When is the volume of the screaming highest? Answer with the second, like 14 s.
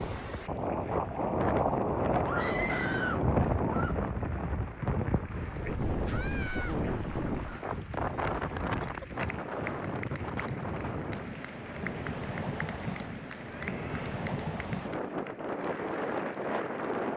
3 s.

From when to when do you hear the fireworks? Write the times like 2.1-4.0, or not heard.
not heard.